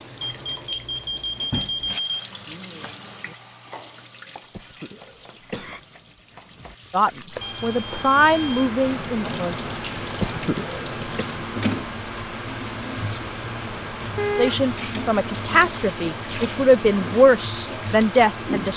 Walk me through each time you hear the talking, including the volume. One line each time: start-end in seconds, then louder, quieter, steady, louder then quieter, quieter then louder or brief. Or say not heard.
6.9-9.6 brief
14.3-18.7 louder.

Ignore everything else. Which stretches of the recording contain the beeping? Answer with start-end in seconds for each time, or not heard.
0.2-2.2, 7.4-8.7, 13.2-14.6.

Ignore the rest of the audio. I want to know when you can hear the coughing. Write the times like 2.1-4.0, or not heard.
4.5-5.8, 10.1-11.2.